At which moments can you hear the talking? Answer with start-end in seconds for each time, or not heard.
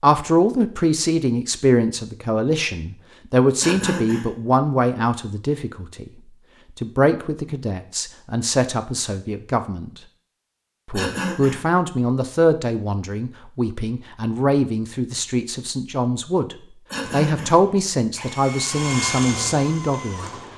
0.0-6.1, 6.8-9.9, 10.8-20.3.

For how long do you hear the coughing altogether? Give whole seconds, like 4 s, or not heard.
2 s.